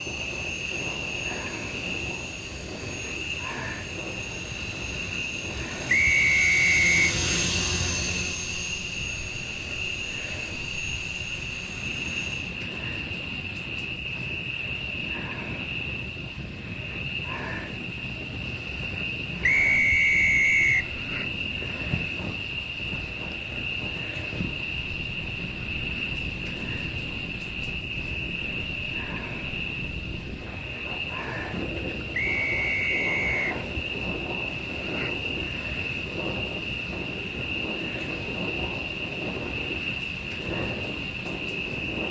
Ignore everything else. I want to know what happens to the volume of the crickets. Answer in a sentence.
The volume of the crickets stays about the same.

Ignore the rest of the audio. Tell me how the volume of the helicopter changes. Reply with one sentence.
The loudness of the helicopter goes up, then down.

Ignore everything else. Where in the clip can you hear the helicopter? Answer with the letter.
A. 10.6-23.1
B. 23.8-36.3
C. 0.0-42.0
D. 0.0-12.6
D.